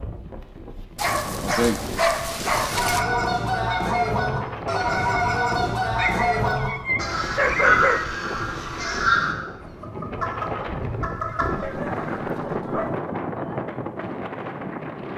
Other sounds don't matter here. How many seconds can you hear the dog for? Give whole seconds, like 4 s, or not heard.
6 s.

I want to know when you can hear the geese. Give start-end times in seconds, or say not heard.
2.7-12.3.